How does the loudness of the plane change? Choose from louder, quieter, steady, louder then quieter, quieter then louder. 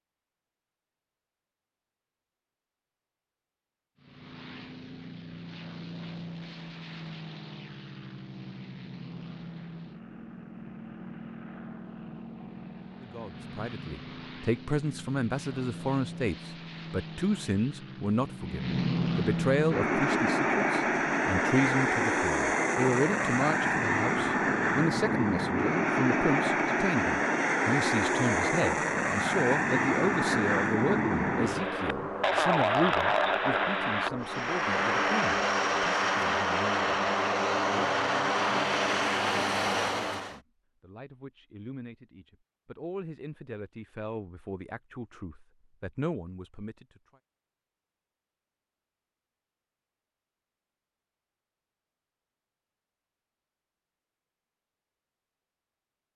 louder.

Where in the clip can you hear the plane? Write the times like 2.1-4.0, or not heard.
4.0-40.4.